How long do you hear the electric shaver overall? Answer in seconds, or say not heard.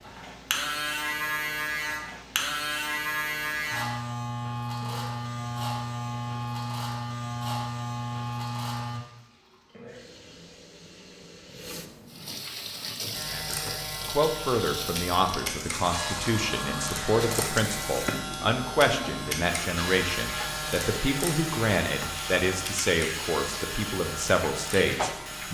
21 s.